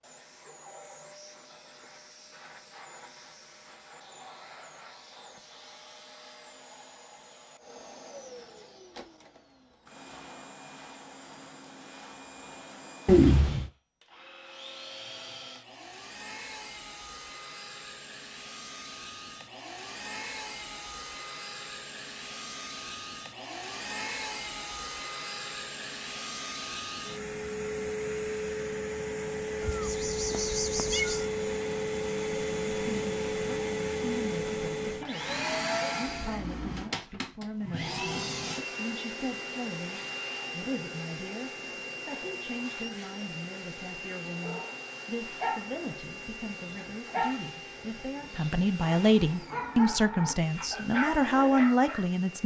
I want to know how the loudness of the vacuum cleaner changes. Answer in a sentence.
The loudness of the vacuum cleaner goes up, then down.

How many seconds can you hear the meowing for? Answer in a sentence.
You can hear the meowing for 2 seconds altogether.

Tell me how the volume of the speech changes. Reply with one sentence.
The volume of the speech goes up.